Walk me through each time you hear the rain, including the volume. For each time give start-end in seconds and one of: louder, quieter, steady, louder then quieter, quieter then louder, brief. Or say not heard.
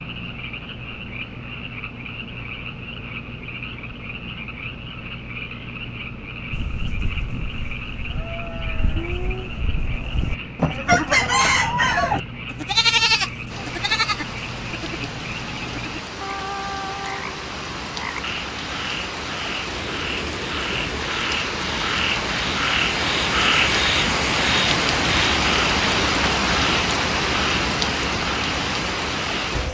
13.4-29.6 louder.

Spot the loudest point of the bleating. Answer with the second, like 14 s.
13 s.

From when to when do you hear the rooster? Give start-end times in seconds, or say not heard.
10.8-12.2.